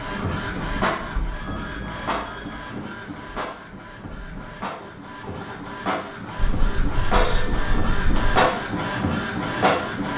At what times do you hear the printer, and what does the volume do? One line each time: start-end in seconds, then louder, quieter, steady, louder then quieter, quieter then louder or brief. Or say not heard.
0.0-10.1 quieter then louder.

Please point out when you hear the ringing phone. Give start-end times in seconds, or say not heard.
1.3-2.7, 7.1-8.3.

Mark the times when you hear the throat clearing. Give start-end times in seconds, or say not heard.
not heard.